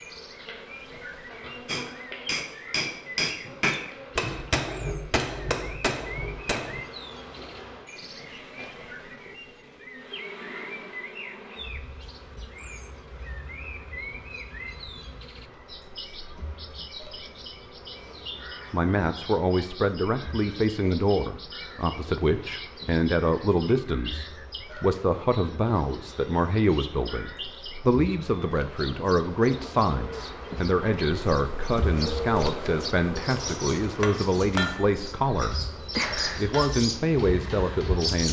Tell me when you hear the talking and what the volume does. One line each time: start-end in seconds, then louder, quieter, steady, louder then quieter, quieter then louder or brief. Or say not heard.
18.7-35.6 steady
36.4-38.2 brief.